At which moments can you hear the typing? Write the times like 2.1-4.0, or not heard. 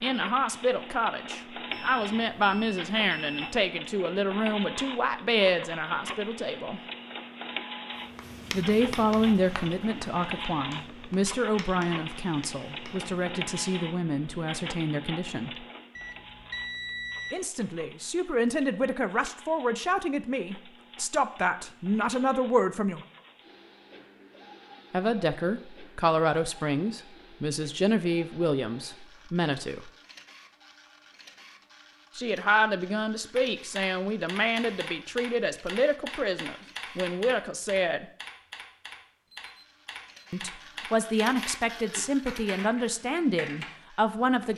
33.4-43.6.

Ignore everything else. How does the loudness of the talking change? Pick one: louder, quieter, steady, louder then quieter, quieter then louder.
steady.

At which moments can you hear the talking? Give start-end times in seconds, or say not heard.
0.0-6.8, 8.5-15.5, 17.3-23.0, 24.9-29.9, 32.1-38.0, 40.3-44.5.